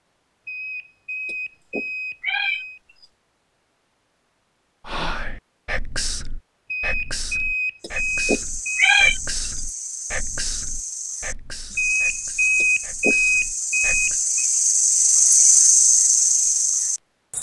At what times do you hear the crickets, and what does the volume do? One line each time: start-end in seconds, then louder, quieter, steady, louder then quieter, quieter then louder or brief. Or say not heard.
7.8-17.3 louder.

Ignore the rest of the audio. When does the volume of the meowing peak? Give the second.
9 s.